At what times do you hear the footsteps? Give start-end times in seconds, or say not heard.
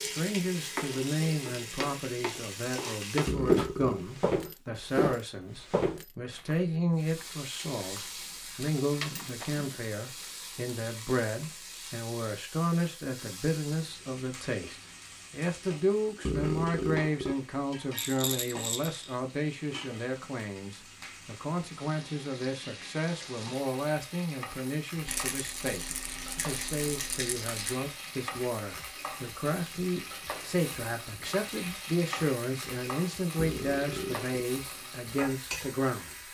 3.5-9.8.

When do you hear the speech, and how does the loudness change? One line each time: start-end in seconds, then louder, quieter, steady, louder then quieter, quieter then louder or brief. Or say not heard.
0.0-36.1 steady.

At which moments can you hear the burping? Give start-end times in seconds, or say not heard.
3.2-4.0, 16.2-17.4, 33.4-34.4.